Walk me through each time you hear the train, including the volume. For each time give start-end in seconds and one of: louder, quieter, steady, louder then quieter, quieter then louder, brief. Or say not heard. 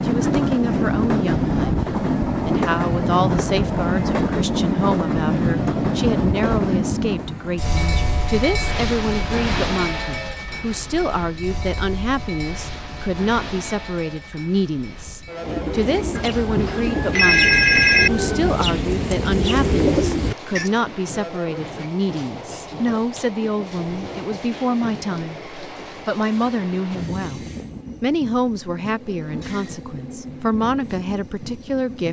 0.0-32.0 quieter.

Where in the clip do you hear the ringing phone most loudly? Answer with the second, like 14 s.
18 s.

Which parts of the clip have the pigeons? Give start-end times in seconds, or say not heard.
15.4-20.7.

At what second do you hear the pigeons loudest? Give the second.
20 s.